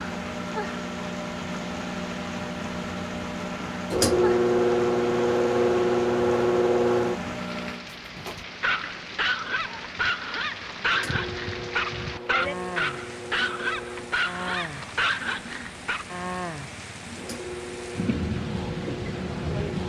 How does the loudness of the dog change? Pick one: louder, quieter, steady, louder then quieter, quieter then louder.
steady.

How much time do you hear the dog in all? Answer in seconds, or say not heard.
8 s.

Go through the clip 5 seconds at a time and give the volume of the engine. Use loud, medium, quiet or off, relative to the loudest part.
loud, loud, quiet, quiet.